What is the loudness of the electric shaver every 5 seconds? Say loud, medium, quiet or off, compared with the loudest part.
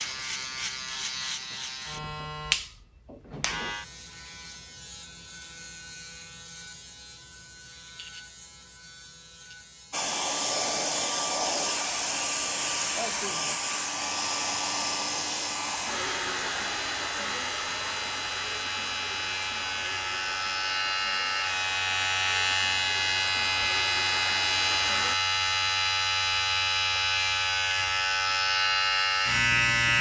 medium, quiet, quiet, medium, loud, loud.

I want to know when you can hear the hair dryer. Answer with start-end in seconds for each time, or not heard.
9.9-25.1.